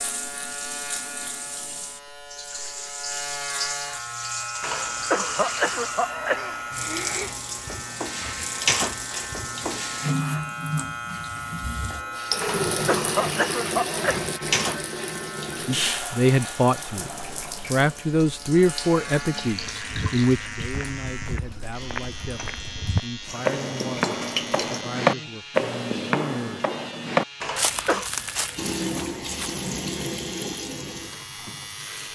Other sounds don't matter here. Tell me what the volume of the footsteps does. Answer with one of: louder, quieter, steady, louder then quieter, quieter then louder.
louder then quieter.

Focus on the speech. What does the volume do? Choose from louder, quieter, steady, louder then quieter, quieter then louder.
quieter.